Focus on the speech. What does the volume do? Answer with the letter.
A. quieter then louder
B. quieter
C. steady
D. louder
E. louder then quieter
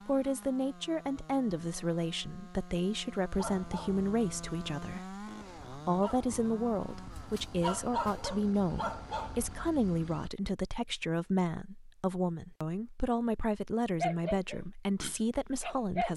C.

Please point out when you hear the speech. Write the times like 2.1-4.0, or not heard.
0.1-16.1.